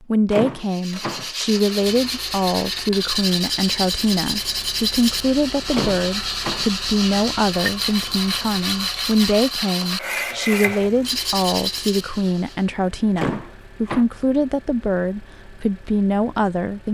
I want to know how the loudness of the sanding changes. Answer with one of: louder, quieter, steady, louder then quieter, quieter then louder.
steady.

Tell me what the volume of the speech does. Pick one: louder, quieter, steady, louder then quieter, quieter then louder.
steady.